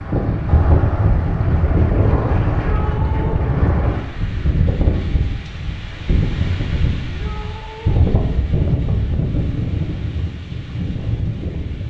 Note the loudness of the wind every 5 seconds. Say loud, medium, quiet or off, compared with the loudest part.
loud, loud, medium.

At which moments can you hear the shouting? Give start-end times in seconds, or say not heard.
2.6-3.5, 7.0-8.1.